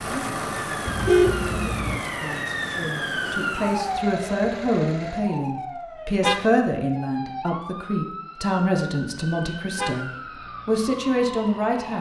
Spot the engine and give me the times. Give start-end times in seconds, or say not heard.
0.0-5.2.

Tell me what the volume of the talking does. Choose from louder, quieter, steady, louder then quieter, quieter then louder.
louder.